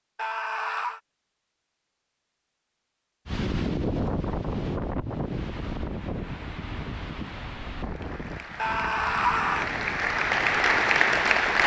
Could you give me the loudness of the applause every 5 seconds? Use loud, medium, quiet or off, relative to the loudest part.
off, quiet, loud.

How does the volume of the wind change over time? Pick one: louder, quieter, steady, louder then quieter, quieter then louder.
quieter.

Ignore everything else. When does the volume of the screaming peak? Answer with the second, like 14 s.
9 s.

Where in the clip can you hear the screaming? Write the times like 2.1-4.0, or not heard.
0.1-1.0, 8.6-9.7.